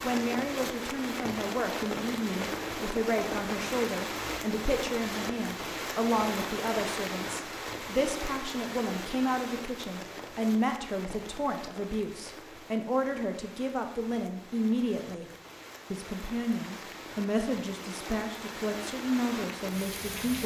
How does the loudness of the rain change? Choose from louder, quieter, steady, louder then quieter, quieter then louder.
quieter then louder.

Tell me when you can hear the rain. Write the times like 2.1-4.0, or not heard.
0.0-20.4.